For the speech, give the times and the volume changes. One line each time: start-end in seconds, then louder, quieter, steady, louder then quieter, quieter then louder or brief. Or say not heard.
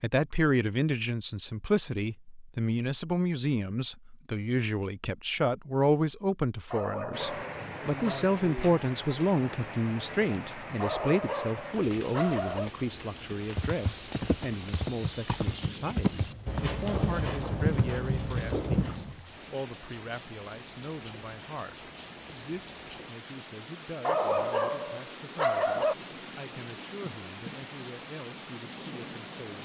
0.0-29.6 quieter.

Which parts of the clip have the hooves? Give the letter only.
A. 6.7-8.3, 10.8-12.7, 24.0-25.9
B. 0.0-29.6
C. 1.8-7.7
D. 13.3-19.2
D.